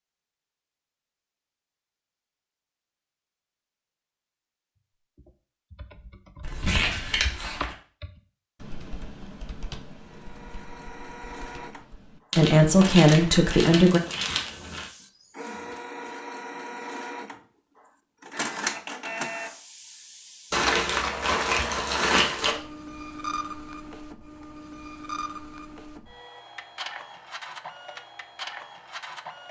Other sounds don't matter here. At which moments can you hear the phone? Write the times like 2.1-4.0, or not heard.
not heard.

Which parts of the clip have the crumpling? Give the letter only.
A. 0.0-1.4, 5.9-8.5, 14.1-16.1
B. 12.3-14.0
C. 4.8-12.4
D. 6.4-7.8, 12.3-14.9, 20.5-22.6
D.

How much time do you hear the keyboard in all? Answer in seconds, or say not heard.
8 s.